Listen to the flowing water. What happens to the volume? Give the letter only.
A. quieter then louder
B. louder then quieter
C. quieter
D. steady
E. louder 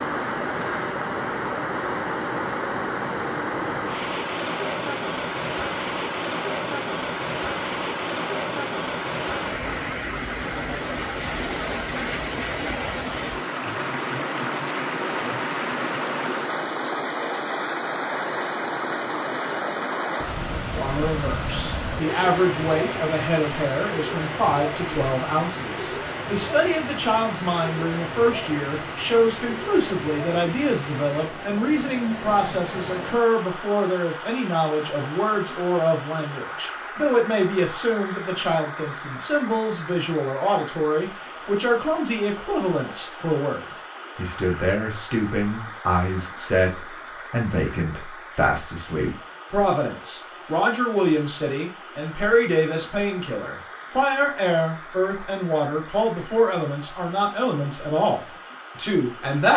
C.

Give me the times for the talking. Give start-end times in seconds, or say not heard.
20.7-59.5.